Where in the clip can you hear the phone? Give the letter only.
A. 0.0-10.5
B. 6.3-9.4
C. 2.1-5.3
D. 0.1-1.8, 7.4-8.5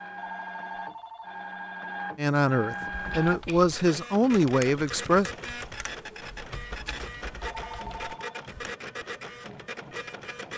D.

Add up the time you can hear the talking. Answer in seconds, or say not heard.
3 s.